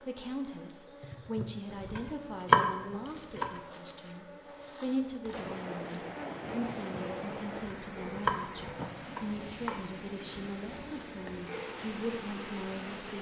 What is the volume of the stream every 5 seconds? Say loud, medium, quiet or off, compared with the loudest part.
off, loud, loud.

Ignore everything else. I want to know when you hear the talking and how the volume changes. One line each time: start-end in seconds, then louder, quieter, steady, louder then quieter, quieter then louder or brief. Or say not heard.
0.0-13.1 steady.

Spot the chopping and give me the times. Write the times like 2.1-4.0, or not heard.
1.7-3.6, 7.5-9.9.